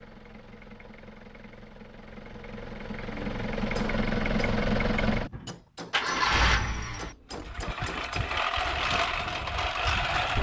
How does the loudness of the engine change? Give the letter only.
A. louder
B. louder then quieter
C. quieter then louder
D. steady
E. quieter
A.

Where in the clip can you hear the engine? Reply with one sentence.
The engine can be heard from 0.0 to 10.3 s.